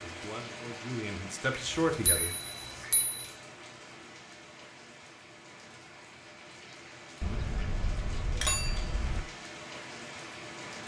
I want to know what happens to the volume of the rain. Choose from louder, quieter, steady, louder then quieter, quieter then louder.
quieter then louder.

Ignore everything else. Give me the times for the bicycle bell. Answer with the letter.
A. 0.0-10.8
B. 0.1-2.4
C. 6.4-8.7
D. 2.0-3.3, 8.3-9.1
D.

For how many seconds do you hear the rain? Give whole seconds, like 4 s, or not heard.
11 s.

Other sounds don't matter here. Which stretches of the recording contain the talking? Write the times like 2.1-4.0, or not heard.
0.1-2.4.